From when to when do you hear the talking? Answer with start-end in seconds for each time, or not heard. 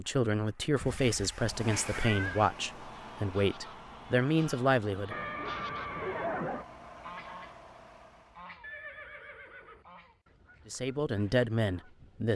0.0-5.2, 10.7-12.3.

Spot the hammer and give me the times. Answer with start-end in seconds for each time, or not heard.
not heard.